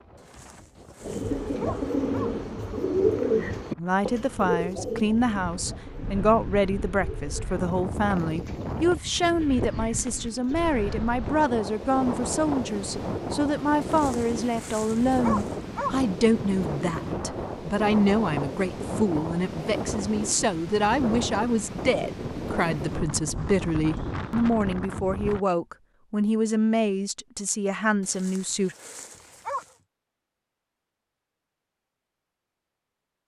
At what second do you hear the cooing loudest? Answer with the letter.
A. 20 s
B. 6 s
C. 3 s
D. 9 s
C.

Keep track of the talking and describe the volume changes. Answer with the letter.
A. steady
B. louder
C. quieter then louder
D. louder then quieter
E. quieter
A.